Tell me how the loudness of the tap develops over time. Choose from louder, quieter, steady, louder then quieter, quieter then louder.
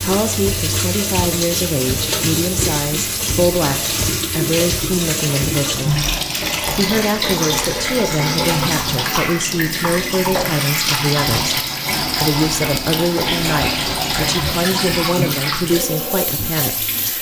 steady.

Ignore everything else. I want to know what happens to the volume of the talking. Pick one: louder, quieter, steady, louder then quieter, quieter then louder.
steady.